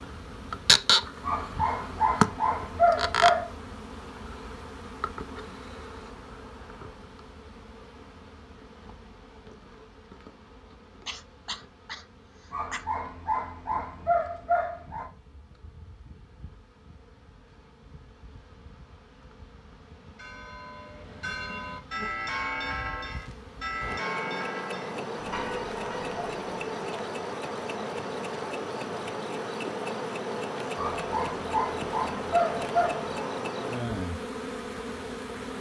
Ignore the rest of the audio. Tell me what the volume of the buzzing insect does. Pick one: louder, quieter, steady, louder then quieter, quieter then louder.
quieter then louder.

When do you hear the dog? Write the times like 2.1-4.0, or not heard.
1.2-3.5, 12.5-15.1, 30.8-33.1.